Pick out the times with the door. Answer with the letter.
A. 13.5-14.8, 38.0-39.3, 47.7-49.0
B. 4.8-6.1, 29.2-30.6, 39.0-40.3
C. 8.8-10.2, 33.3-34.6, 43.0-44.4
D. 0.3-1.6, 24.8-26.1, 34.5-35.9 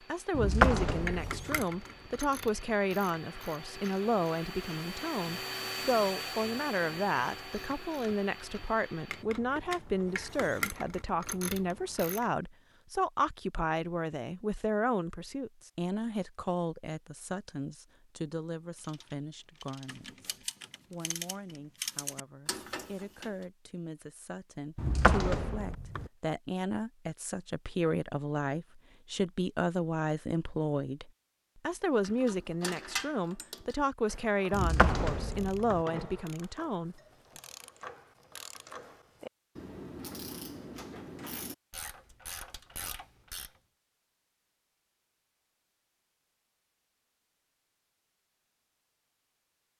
D.